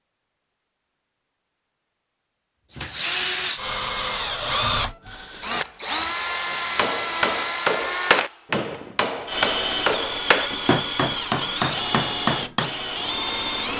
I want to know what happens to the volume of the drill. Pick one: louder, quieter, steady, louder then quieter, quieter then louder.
steady.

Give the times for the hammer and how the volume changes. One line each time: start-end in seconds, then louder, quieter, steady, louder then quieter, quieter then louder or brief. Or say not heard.
6.5-12.8 steady.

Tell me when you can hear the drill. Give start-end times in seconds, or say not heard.
2.7-13.7.